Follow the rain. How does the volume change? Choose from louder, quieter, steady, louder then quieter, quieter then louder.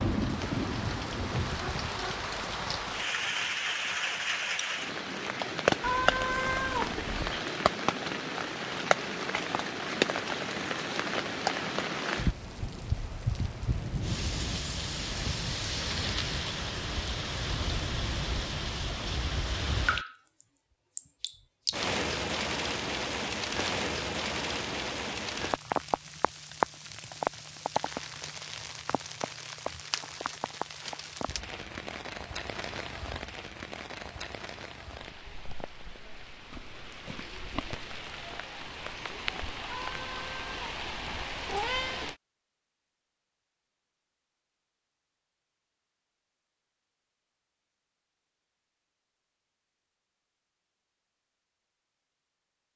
quieter.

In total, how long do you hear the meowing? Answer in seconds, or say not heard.
4 s.